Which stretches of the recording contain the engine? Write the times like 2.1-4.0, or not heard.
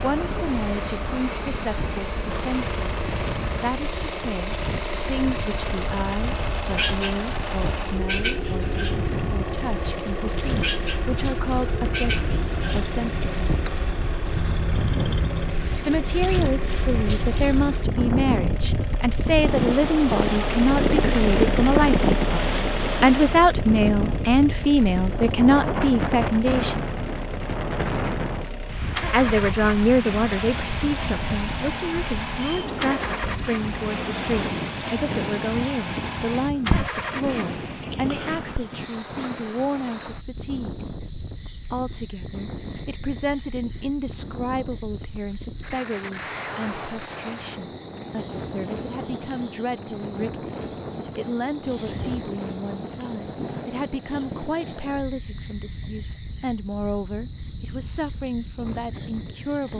0.0-38.0.